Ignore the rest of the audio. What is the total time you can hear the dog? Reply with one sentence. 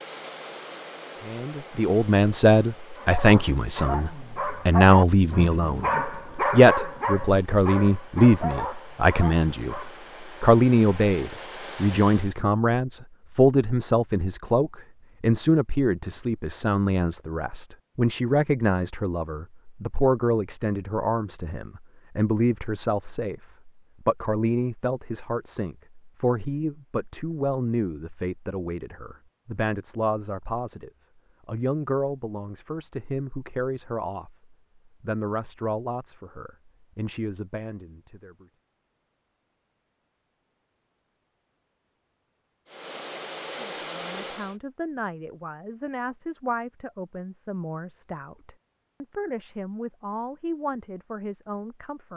You can hear the dog for 7 seconds altogether.